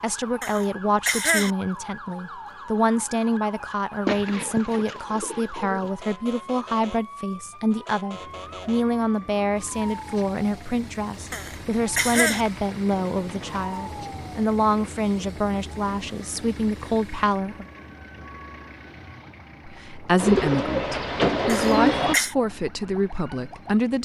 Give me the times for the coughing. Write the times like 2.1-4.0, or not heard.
0.4-1.5, 11.3-12.4, 21.4-22.4.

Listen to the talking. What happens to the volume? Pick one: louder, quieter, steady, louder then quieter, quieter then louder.
steady.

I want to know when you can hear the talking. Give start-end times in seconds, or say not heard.
0.0-17.6, 19.6-24.0.